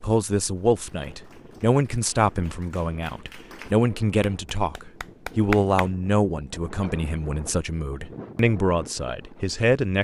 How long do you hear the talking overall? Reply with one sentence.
The talking can be heard for 10 seconds in total.